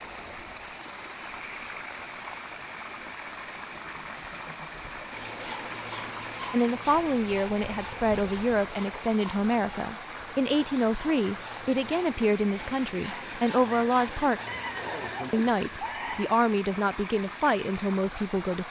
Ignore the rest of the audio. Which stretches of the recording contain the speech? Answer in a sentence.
You can hear the speech from 6.5 to 14.4 s and from 15.3 to 18.6 s.